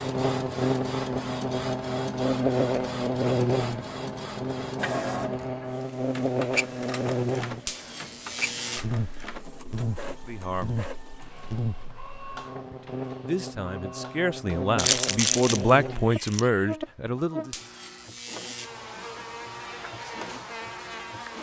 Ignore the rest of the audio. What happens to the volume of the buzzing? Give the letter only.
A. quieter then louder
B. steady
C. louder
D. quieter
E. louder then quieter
D.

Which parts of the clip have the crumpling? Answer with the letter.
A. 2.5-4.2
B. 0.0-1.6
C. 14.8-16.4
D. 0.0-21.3
C.